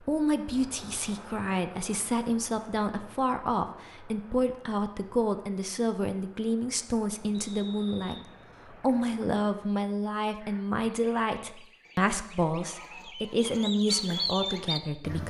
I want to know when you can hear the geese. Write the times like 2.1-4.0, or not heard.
10.3-15.2.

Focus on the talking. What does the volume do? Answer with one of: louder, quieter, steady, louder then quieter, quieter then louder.
steady.